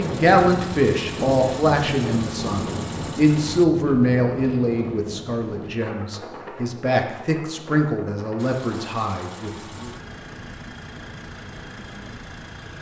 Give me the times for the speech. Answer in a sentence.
The speech can be heard from 0.0 to 9.9 s.